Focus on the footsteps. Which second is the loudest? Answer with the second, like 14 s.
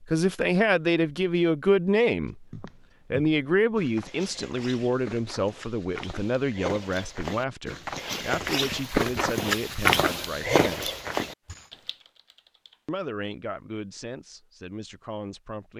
10 s.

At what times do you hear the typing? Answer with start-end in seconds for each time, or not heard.
11.4-12.9.